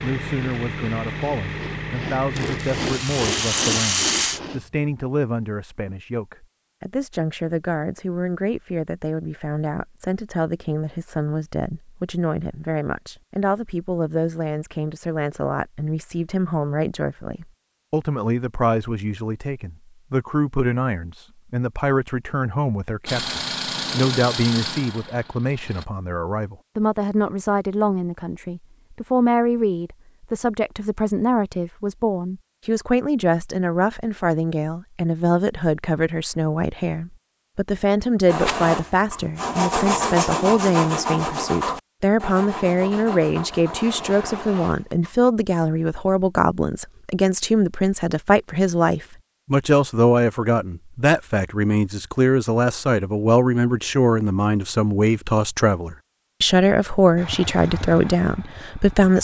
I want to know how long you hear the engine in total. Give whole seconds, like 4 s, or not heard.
8 s.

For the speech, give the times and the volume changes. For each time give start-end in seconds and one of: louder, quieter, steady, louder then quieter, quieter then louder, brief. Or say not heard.
0.0-59.1 louder.